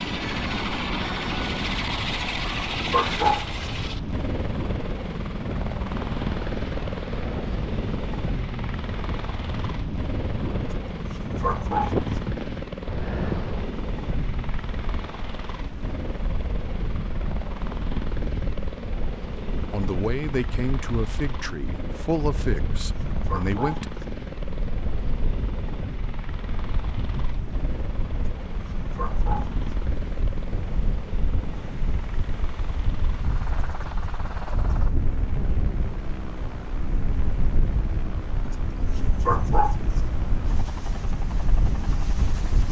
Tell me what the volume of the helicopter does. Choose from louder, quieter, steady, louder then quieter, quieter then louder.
quieter.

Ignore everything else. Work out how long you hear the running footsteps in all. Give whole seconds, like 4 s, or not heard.
not heard.